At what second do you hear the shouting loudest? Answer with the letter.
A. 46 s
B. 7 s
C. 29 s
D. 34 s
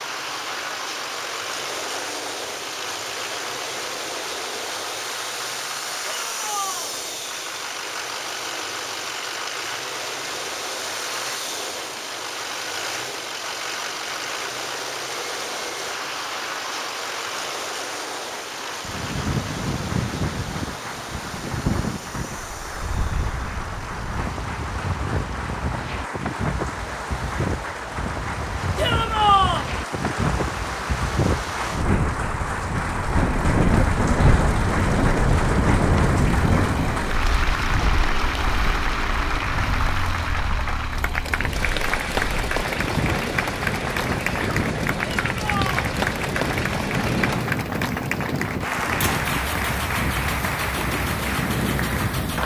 C.